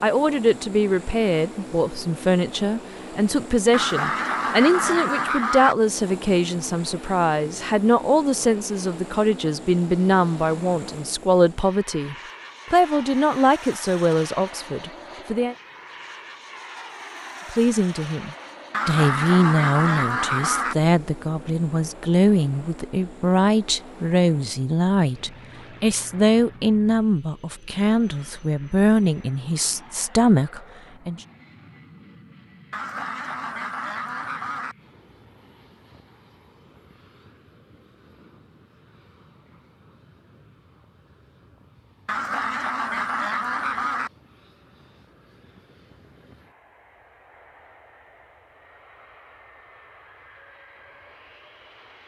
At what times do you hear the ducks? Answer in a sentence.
You can hear the ducks from 3.7 to 5.8 s, from 18.7 to 20.8 s, from 32.7 to 34.8 s and from 42.0 to 44.1 s.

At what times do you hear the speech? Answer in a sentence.
You can hear the speech from 0.0 to 15.6 s and from 17.5 to 31.2 s.